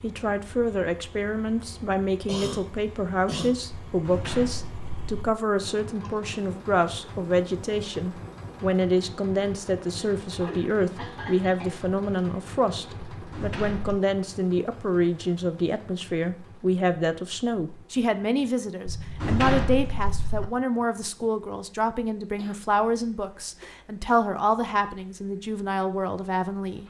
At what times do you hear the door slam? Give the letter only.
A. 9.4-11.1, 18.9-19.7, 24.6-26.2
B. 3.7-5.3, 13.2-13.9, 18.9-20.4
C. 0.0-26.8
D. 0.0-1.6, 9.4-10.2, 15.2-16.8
B.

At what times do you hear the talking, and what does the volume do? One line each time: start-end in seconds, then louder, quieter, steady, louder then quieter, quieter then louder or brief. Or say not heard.
0.0-26.8 steady.